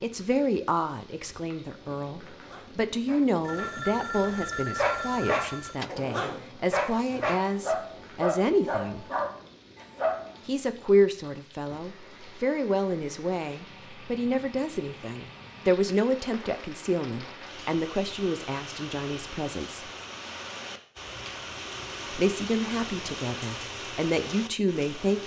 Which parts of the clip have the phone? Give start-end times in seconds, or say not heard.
3.4-5.9.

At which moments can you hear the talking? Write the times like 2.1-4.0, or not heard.
0.0-9.1, 10.4-19.9, 22.1-25.2.